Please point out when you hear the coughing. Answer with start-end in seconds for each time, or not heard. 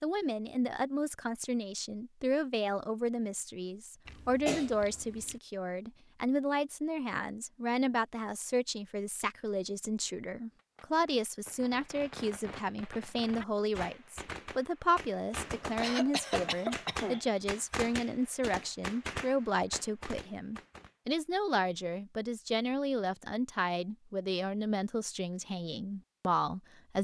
4.0-5.4, 15.8-17.2.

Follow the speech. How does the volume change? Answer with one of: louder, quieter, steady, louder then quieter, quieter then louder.
steady.